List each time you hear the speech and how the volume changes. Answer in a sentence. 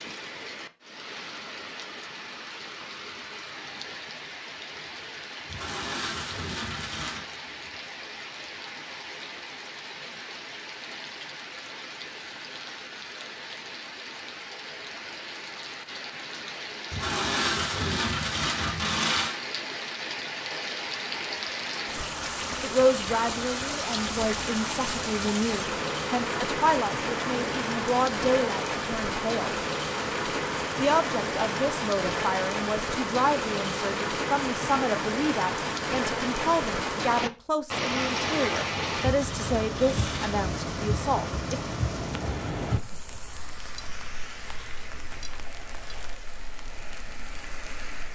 You can hear the speech from 22.6 to 29.6 s, at a steady volume; and from 30.8 to 41.6 s, at a steady volume.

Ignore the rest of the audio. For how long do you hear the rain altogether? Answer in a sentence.
You can hear the rain for 48 seconds altogether.